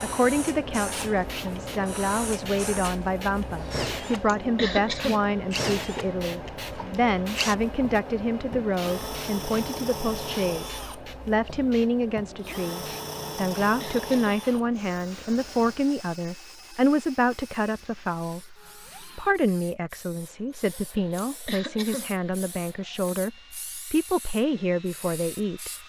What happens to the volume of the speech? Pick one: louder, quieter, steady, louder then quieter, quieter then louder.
steady.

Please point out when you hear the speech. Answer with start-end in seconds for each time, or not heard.
0.0-25.8.